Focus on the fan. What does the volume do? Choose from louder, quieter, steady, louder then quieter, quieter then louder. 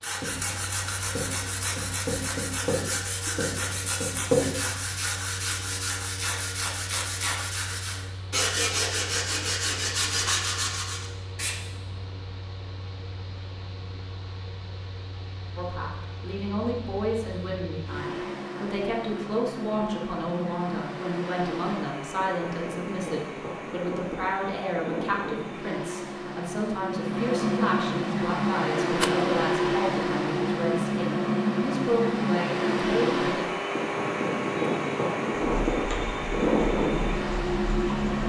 louder.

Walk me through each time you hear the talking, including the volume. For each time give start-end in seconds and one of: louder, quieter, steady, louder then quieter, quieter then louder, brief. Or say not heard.
15.6-33.5 steady.